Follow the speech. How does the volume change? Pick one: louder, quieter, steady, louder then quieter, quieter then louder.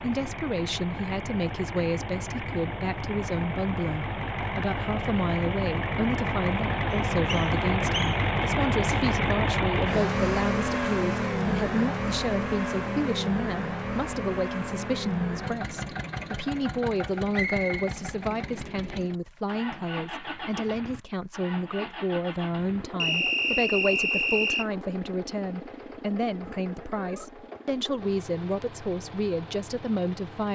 steady.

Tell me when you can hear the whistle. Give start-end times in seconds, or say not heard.
6.9-8.2, 17.3-17.9, 23.0-24.6.